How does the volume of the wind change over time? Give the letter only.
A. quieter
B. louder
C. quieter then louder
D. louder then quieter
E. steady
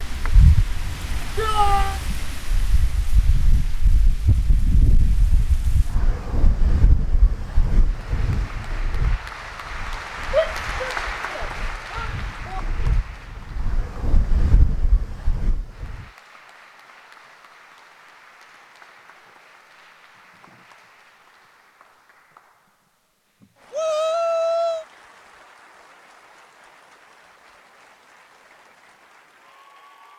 C.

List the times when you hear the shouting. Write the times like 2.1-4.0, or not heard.
1.4-2.0, 10.3-12.6, 23.7-24.9.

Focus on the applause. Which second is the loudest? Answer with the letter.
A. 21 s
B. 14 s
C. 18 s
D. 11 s
D.